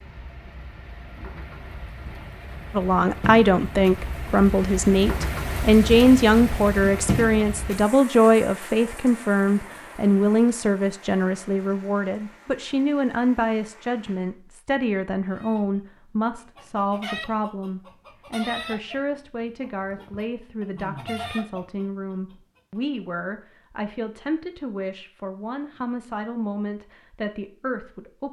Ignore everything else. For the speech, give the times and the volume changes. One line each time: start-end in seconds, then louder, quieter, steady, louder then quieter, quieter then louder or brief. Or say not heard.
2.7-28.2 quieter.